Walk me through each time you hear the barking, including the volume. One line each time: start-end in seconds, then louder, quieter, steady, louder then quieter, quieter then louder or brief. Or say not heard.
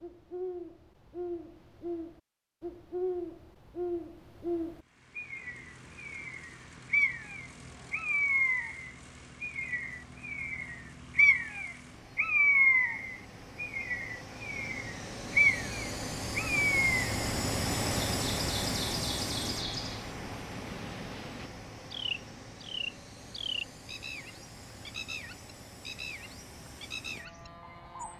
not heard.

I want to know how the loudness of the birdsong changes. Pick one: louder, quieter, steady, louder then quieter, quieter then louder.
louder then quieter.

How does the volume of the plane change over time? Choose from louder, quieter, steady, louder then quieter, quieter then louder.
louder then quieter.